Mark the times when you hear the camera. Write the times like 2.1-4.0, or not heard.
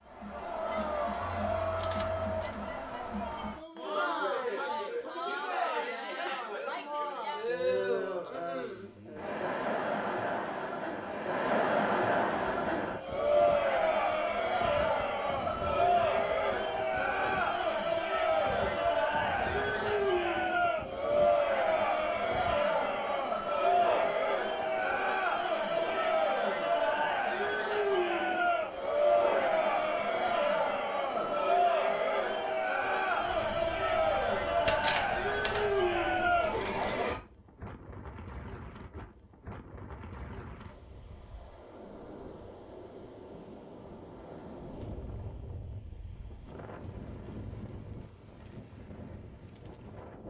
1.2-2.5, 34.6-35.8.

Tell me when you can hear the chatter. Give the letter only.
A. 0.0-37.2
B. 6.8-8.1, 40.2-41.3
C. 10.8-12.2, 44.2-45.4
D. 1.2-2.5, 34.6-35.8
A.